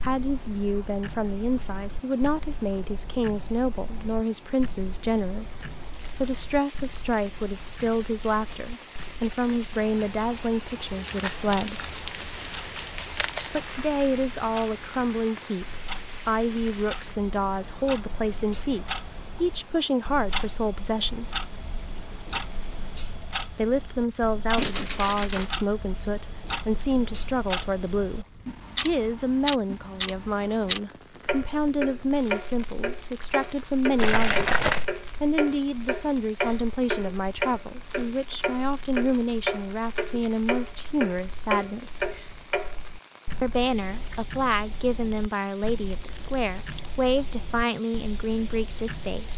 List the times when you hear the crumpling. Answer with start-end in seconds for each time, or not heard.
11.1-13.5, 24.6-25.4, 34.0-34.9.